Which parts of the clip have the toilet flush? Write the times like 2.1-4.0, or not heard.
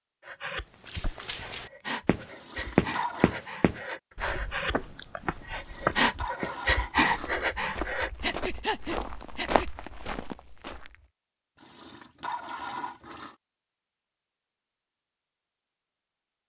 2.3-3.4, 5.5-7.5, 11.6-13.3.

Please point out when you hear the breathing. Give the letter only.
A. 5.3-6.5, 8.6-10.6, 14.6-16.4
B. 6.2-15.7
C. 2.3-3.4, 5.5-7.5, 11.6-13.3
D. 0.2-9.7
D.